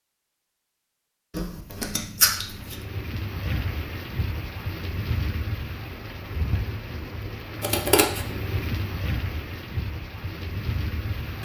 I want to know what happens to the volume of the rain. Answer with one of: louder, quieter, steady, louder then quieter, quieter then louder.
steady.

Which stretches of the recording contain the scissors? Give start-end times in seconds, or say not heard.
1.3-2.8, 7.6-8.2.